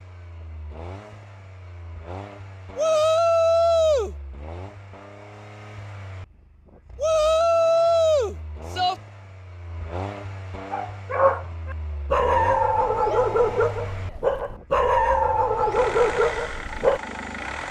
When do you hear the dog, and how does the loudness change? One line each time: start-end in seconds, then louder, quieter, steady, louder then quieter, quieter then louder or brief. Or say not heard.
10.7-17.0 steady.